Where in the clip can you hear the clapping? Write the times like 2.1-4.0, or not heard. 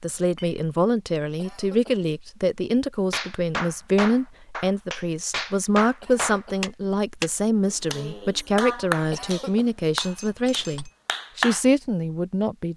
3.1-11.6.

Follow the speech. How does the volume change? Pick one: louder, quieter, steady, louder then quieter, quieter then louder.
steady.